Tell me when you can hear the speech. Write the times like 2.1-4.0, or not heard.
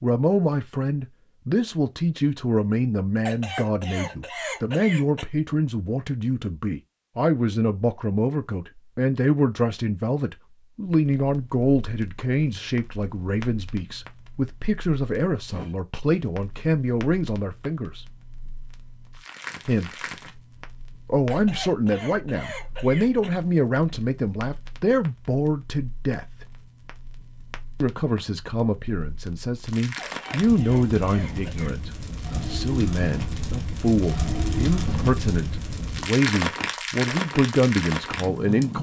0.0-18.1, 19.6-20.1, 21.1-26.4, 27.8-38.7.